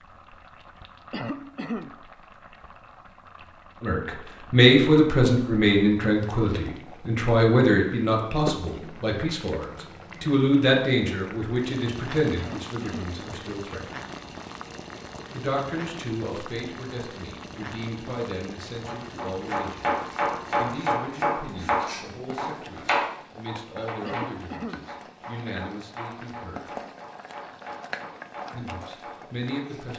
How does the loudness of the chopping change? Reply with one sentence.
The loudness of the chopping goes down.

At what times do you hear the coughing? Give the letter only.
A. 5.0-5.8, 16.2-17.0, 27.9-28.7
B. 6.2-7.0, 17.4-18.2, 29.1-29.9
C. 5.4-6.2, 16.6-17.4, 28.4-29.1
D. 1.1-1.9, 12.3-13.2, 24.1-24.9
D.